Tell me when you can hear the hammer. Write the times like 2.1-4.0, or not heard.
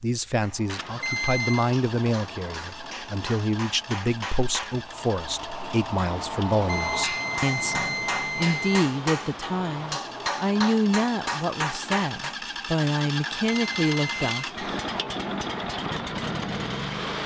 0.3-12.3.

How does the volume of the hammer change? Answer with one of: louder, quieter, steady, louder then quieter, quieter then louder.
louder.